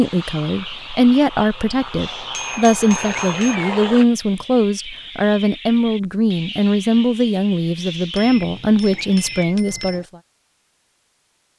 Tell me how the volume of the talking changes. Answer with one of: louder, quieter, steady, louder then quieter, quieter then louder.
steady.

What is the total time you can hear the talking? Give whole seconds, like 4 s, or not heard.
10 s.